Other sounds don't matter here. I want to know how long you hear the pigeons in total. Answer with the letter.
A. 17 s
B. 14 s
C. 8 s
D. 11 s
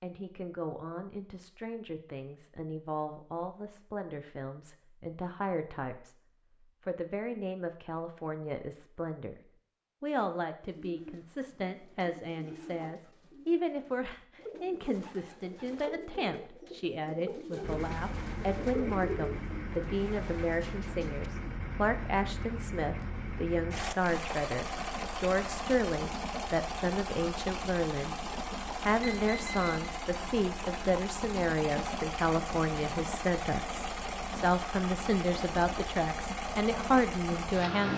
D.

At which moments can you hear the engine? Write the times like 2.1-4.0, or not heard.
17.6-37.9.